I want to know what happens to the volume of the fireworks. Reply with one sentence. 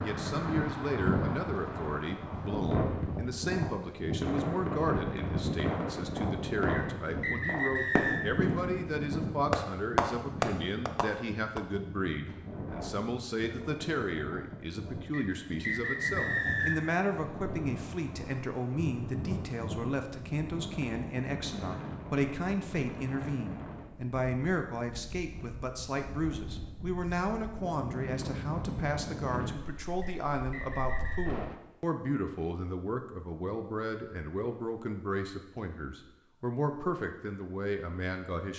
The volume of the fireworks goes up.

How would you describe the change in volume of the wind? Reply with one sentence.
The volume of the wind goes down.